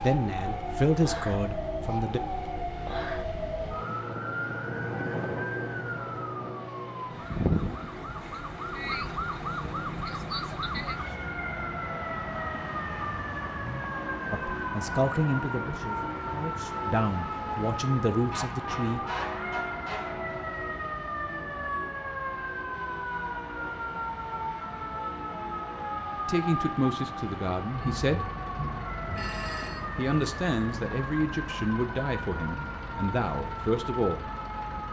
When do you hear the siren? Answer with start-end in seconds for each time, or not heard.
0.0-34.8.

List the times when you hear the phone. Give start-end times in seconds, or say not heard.
27.8-29.9.